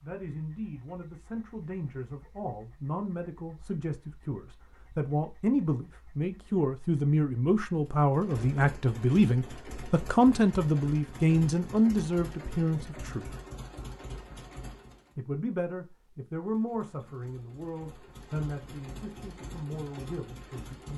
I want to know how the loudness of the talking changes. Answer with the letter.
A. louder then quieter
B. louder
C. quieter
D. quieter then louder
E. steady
A.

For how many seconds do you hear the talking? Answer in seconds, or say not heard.
19 s.